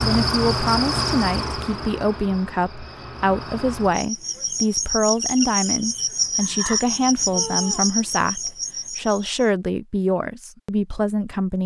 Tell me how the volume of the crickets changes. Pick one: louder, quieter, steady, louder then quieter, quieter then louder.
quieter then louder.